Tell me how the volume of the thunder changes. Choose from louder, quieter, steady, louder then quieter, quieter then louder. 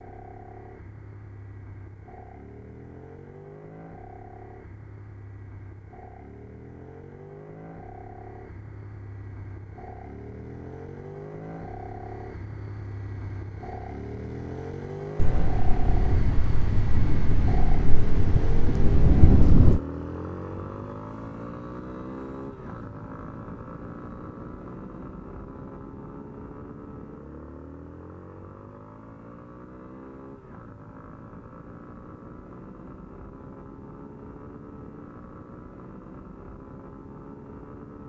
louder.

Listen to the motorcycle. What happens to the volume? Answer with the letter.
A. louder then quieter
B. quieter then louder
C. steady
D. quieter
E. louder
A.